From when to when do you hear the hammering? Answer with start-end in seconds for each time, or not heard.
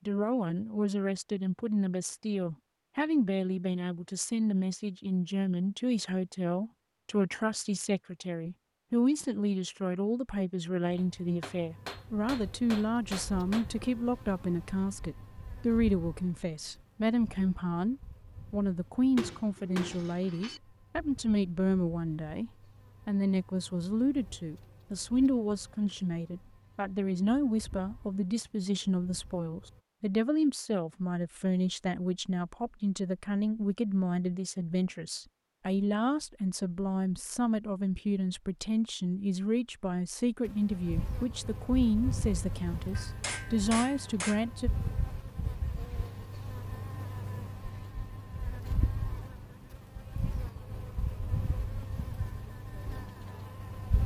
10.9-13.7, 19.1-20.6, 43.0-44.5.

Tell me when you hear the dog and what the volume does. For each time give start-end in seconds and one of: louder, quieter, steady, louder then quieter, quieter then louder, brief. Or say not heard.
not heard.